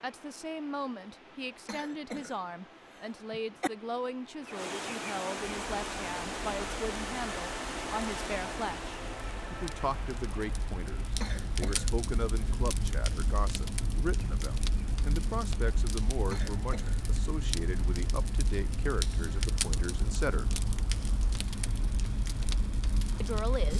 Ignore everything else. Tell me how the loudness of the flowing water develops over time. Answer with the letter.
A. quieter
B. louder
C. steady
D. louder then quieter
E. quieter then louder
D.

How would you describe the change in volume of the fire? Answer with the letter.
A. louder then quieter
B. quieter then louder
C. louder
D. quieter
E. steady
C.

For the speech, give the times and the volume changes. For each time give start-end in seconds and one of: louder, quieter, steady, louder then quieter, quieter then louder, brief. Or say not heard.
0.0-20.6 steady
23.2-23.7 brief.